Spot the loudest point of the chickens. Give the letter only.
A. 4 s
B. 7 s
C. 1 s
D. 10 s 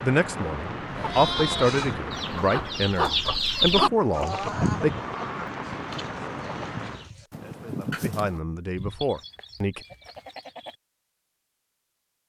A.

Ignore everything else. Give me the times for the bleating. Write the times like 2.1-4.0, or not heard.
0.9-1.9, 8.8-10.8.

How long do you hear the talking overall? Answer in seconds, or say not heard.
8 s.